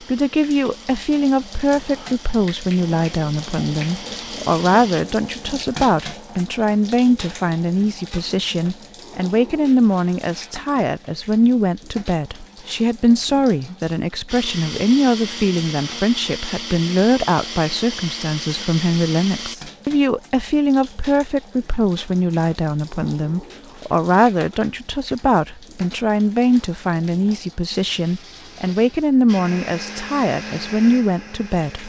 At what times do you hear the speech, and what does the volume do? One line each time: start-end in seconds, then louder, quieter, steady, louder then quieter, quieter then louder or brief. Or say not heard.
0.1-31.8 steady.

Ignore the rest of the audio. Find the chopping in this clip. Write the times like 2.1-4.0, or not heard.
not heard.